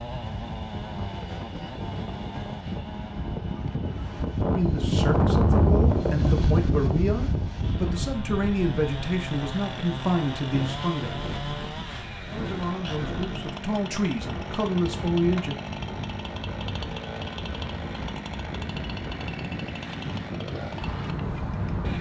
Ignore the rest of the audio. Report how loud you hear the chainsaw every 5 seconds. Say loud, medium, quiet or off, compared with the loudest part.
medium, loud, loud, loud, loud.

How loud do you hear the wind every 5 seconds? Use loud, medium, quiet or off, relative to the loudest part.
medium, loud, quiet, quiet, medium.